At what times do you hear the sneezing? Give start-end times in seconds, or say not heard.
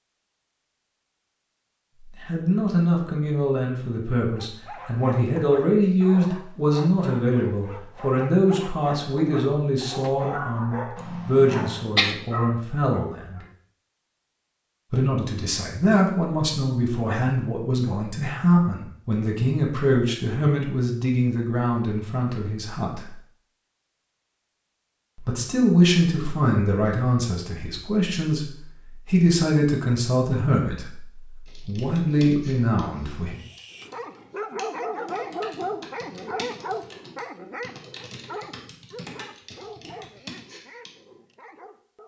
10.9-12.2.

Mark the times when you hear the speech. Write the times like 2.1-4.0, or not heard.
2.2-13.4, 14.9-23.1, 25.2-33.4.